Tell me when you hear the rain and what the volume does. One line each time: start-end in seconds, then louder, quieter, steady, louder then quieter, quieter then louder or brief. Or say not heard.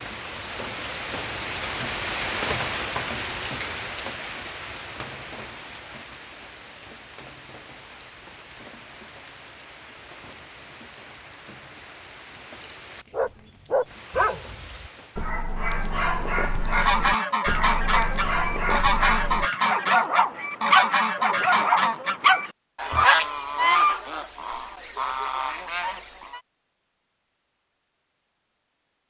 0.0-15.4 quieter.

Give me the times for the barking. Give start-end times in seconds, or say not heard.
13.1-23.1.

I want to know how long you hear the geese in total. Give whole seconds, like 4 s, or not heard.
10 s.